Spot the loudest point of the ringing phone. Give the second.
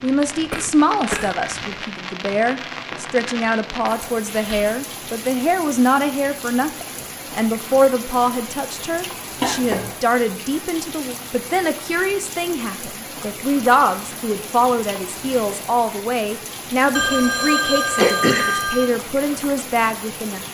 18 s.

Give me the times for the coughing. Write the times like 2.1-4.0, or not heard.
0.5-1.4, 9.4-9.9, 17.9-18.6.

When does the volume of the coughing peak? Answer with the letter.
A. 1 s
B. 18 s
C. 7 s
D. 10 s
B.